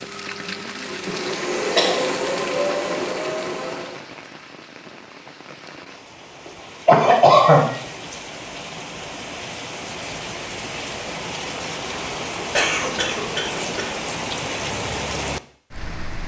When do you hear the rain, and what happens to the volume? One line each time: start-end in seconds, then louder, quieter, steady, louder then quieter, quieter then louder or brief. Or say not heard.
0.0-16.2 quieter then louder.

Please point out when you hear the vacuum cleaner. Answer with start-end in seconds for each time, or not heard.
0.0-4.0.